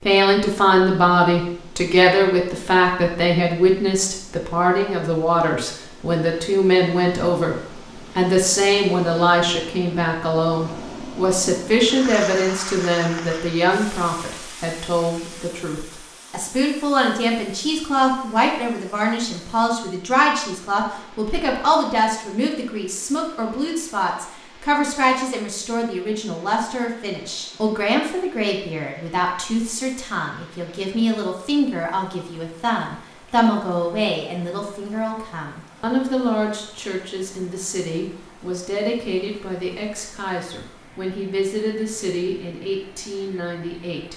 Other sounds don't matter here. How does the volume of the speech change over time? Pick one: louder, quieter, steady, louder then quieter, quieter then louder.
quieter.